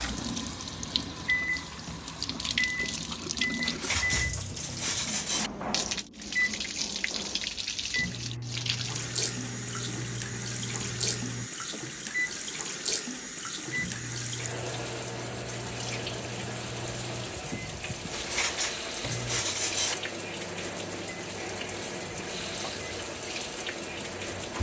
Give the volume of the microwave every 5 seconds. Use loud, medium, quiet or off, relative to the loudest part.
loud, loud, loud, medium, medium.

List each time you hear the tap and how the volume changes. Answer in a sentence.
You can hear the tap from 0.0 to 24.5 s, at a steady volume.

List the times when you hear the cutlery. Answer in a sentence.
You can hear the cutlery from 3.6 to 5.5 s and from 18.1 to 19.9 s.